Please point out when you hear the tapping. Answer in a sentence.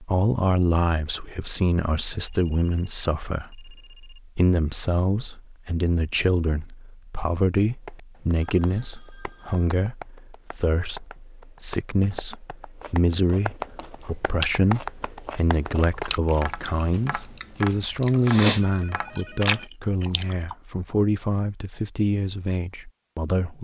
You can hear the tapping from 7.8 to 19.6 s.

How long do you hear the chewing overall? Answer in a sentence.
The chewing can be heard for 8 seconds in total.